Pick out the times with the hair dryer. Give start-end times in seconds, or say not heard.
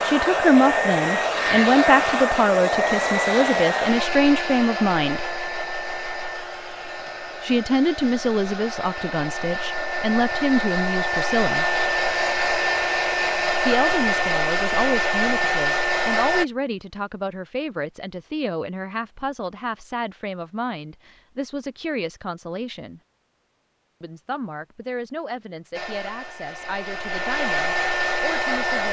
0.0-16.4, 25.7-28.8.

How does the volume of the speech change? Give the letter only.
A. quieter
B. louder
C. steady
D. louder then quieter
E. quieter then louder
A.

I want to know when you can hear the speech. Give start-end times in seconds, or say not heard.
0.0-5.2, 7.4-11.7, 13.7-23.0, 24.0-28.8.